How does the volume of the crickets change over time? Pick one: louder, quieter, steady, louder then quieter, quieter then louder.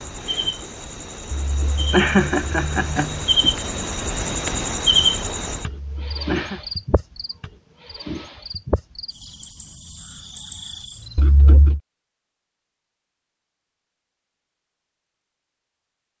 louder then quieter.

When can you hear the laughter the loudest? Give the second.
2 s.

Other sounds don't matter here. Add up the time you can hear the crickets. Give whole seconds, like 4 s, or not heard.
11 s.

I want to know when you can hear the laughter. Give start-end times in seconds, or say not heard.
1.3-3.5, 5.7-6.6, 11.2-11.8.